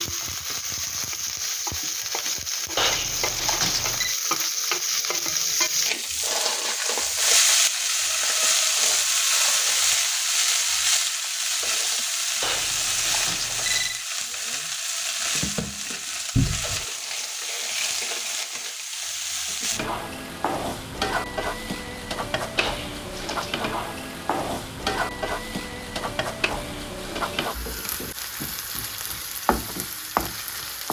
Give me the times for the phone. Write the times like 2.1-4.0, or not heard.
2.8-4.2, 12.4-14.1, 22.6-23.6.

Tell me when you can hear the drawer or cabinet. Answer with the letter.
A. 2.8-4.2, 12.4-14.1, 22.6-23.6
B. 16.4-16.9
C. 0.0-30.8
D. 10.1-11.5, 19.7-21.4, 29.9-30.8
B.